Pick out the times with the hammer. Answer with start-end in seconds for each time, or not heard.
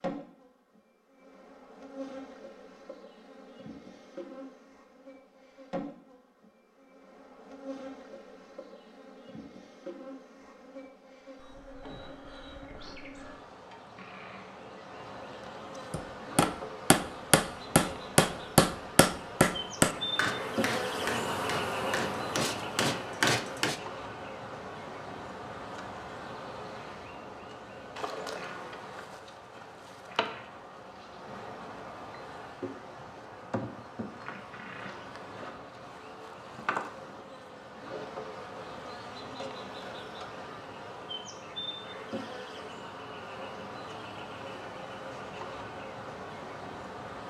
15.9-23.8.